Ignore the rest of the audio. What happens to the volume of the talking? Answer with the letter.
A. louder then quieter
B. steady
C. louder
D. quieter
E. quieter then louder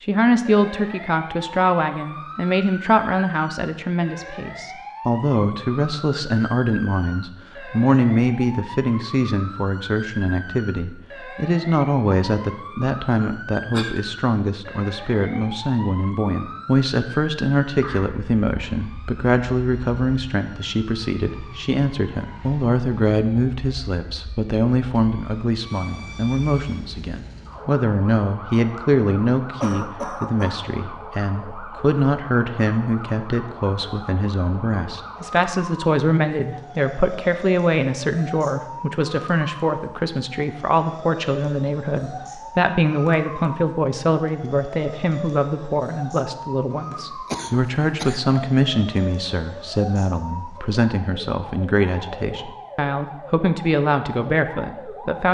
B.